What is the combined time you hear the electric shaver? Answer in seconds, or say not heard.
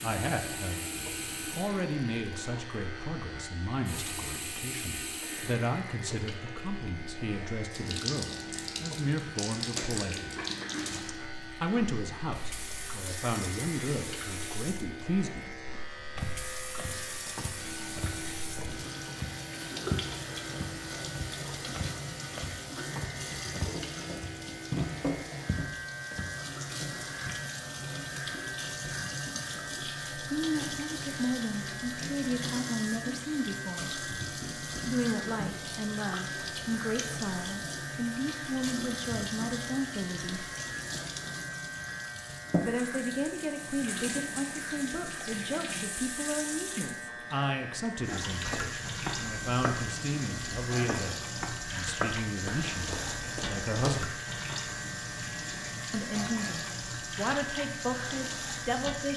59 s.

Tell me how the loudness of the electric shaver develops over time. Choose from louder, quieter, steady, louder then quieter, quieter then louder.
steady.